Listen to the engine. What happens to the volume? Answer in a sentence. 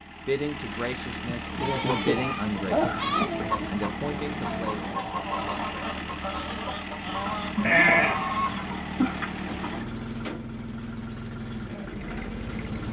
The loudness of the engine stays about the same.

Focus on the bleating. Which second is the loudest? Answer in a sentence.
The loudest moment of the bleating is at 8 seconds.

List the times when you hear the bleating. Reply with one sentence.
You can hear the bleating from 1.2 to 3.2 s and from 7.2 to 9.2 s.